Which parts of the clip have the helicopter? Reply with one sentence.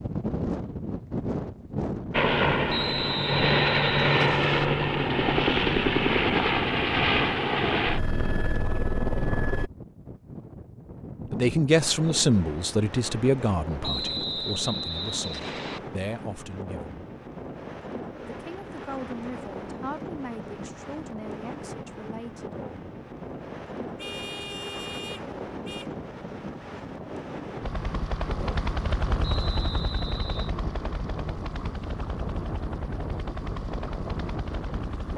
The helicopter can be heard from 2.1 to 9.7 s and from 27.6 to 35.1 s.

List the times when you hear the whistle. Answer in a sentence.
You can hear the whistle from 2.6 to 4.7 s, from 13.8 to 15.8 s and from 29.2 to 30.6 s.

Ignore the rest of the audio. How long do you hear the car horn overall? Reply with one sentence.
You can hear the car horn for 2 seconds altogether.